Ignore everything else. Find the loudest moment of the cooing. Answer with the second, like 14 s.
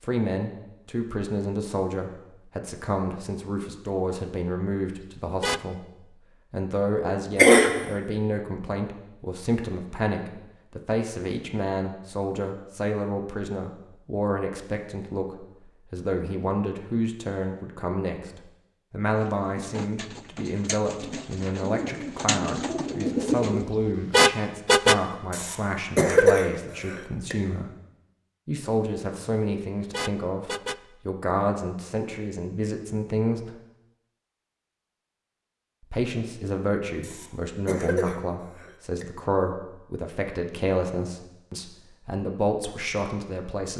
23 s.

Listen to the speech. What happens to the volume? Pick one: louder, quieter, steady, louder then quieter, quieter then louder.
steady.